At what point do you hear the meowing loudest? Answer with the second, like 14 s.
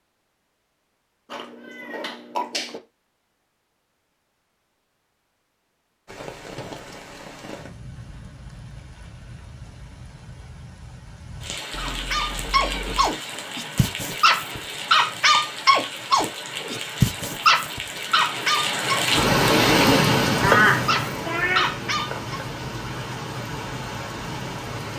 21 s.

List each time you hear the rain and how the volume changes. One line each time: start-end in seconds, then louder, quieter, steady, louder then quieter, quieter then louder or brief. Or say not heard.
6.0-24.9 louder then quieter.